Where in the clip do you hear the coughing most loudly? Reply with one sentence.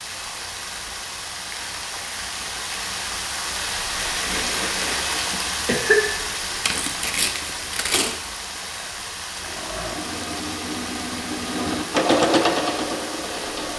The volume of the coughing peaks at 6 seconds.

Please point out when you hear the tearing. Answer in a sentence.
The tearing can be heard from 6.7 to 8.2 s.